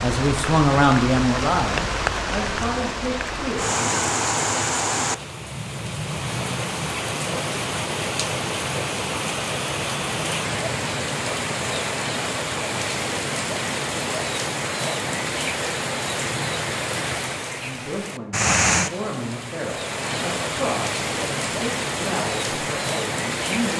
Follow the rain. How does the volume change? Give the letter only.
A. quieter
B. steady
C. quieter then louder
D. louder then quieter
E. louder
B.